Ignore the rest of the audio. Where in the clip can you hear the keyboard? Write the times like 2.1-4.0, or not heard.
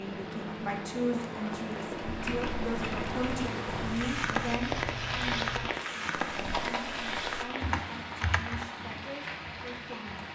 2.0-8.7.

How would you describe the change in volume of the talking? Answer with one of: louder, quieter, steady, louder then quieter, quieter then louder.
quieter.